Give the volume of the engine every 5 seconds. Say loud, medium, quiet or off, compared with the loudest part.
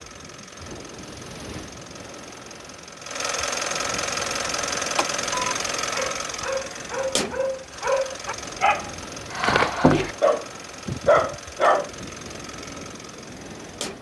loud, loud, medium.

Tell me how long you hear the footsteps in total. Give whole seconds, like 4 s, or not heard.
not heard.